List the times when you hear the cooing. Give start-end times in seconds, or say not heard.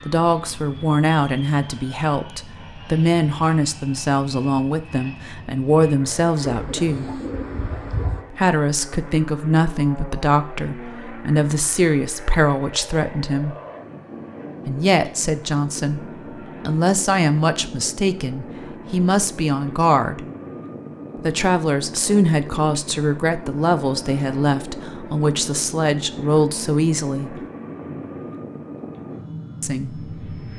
6.4-8.2.